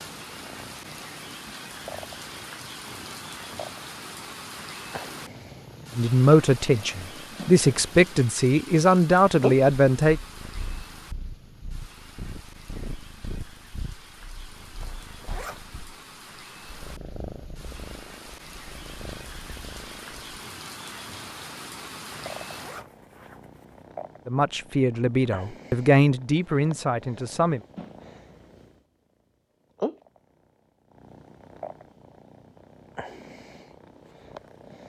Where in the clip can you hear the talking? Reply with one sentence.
The talking can be heard from 6.0 to 10.2 s and from 24.2 to 27.6 s.